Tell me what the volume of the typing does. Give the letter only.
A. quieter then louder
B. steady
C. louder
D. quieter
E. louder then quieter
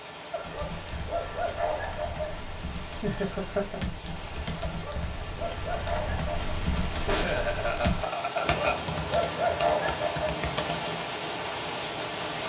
C.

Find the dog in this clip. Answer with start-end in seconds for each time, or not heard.
0.3-2.4, 4.6-6.4, 8.3-10.3.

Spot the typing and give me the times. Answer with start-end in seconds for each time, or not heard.
0.4-11.1.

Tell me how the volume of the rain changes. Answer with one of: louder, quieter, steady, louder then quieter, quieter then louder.
louder.